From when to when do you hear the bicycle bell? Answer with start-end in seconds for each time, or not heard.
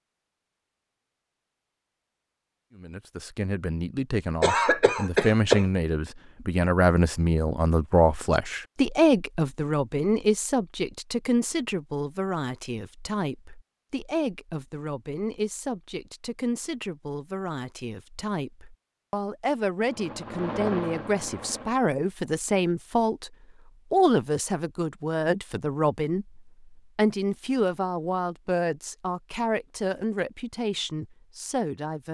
not heard.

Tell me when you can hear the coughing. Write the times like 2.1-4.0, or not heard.
4.4-5.7.